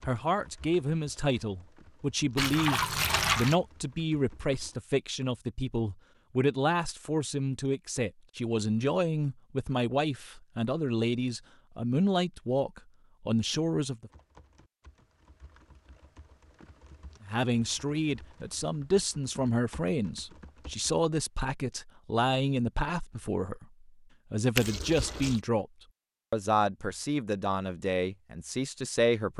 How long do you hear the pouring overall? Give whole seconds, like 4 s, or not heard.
2 s.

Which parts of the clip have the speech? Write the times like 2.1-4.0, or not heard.
0.1-14.1, 17.2-25.6, 26.3-29.3.